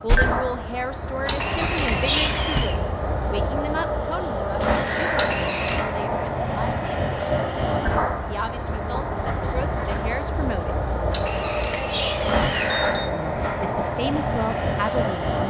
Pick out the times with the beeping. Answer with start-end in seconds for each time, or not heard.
1.2-2.8, 5.2-5.8, 11.1-13.1.